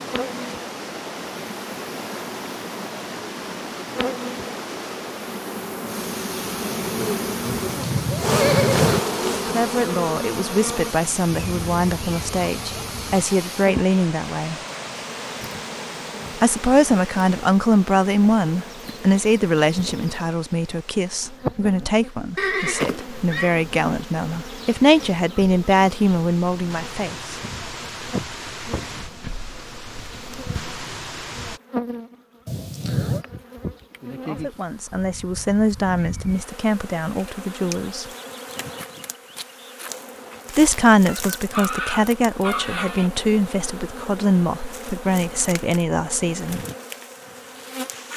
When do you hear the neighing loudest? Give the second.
9 s.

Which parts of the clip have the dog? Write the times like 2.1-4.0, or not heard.
41.0-43.1.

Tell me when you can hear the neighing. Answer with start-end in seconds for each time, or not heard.
7.5-9.0, 22.4-23.6, 32.5-33.2.